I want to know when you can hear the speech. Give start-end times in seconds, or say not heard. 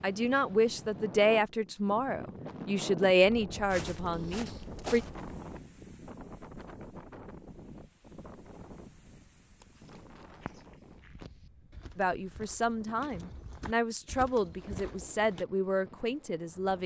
0.0-5.0, 11.9-16.8.